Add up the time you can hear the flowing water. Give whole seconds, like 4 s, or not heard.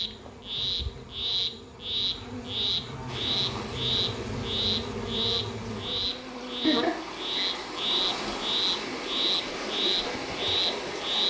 8 s.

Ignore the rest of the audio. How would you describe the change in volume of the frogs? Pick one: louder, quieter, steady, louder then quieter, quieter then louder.
steady.